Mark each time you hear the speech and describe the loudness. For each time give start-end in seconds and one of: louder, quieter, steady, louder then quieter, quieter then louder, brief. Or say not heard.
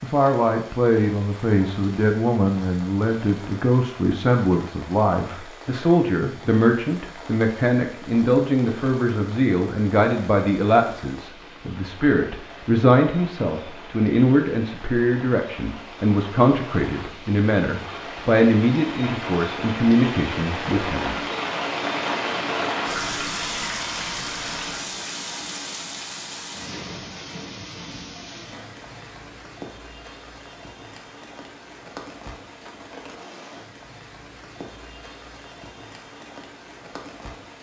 0.0-21.1 steady.